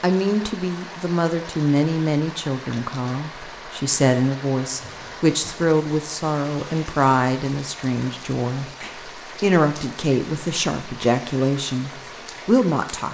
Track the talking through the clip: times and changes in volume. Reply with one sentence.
You can hear the talking from 0.0 to 13.0 s, at a steady volume.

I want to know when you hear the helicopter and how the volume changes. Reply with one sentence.
The helicopter can't be heard in this clip.